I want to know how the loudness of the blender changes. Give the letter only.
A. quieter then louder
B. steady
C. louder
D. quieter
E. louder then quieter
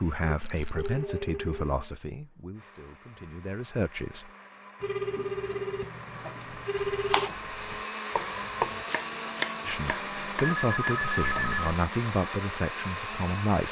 C.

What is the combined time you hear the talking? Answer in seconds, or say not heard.
8 s.